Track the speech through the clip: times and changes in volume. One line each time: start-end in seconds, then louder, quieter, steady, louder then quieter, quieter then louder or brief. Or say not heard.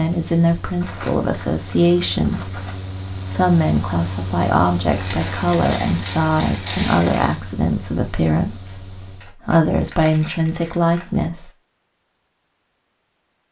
0.0-11.5 steady.